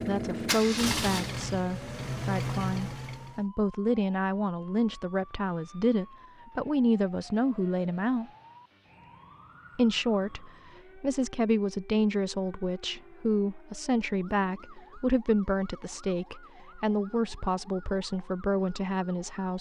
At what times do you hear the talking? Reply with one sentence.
The talking can be heard from 0.1 to 8.3 s and from 9.8 to 19.5 s.